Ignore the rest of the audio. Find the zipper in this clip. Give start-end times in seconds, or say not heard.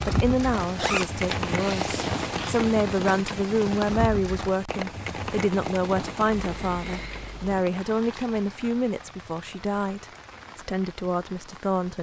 0.6-2.6, 6.5-7.6.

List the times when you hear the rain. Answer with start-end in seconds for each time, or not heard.
0.0-11.9.